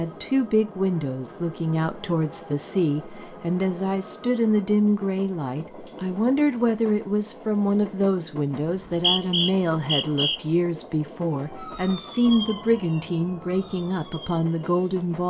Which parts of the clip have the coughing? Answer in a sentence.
The coughing can't be heard in this clip.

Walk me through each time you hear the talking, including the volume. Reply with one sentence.
The talking can be heard from 0.0 to 15.2 s, at a steady volume.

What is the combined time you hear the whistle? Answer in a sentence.
The whistle can be heard for 2 seconds in total.